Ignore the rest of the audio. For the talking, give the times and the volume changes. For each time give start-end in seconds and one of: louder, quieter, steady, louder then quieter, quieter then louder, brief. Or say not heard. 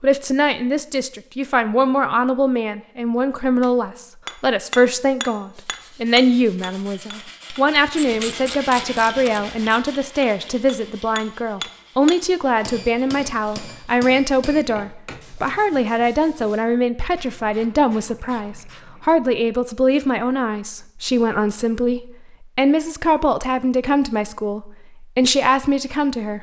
0.0-26.3 steady.